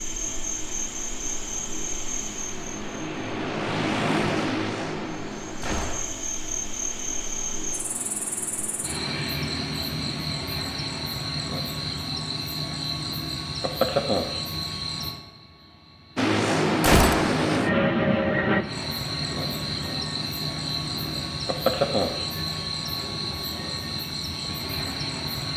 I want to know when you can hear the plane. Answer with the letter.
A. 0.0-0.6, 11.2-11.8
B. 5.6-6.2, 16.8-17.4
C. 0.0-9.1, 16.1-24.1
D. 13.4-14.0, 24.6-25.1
C.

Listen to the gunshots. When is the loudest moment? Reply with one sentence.
The volume of the gunshots peaks at 17 seconds.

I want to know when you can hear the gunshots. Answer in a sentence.
The gunshots can be heard from 5.6 to 6.2 s and from 16.8 to 17.4 s.